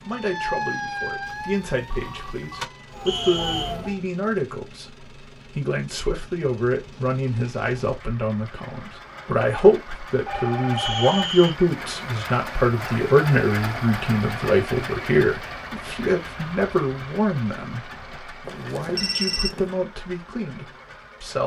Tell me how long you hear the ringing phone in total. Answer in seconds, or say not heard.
4 s.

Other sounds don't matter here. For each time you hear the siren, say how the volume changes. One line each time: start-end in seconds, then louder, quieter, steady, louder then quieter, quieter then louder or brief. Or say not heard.
0.0-4.0 quieter then louder.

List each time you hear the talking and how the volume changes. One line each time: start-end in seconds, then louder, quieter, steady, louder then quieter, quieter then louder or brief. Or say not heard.
0.0-21.4 louder then quieter.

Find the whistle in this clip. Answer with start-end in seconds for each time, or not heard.
3.0-3.8, 10.8-11.6.